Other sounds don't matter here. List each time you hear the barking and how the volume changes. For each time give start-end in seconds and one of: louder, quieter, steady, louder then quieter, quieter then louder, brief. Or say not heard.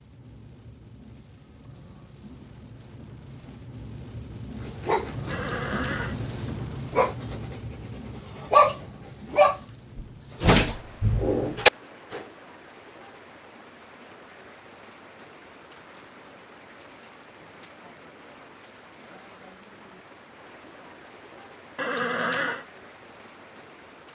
4.6-12.2 louder.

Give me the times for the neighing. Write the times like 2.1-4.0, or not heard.
5.3-6.2, 21.8-22.6.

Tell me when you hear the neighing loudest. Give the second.
22 s.